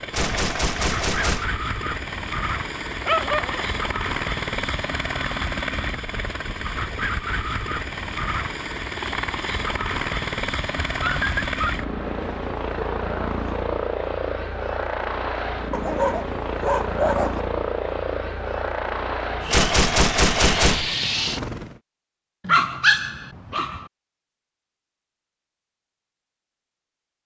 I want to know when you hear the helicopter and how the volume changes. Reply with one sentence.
The helicopter can be heard from 0.0 to 21.8 s, at a steady volume.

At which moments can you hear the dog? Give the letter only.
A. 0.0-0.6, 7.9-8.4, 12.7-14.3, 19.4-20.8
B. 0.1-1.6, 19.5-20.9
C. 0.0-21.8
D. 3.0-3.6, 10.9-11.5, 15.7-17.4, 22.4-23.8
D.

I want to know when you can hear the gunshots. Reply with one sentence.
The gunshots can be heard from 0.1 to 1.6 s and from 19.5 to 20.9 s.